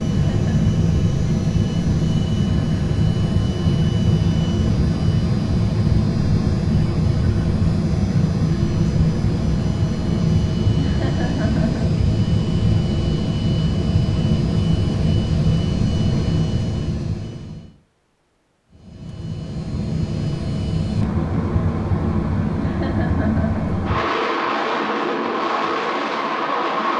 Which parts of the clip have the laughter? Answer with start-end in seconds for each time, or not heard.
0.2-0.7, 10.8-11.9, 22.6-23.6.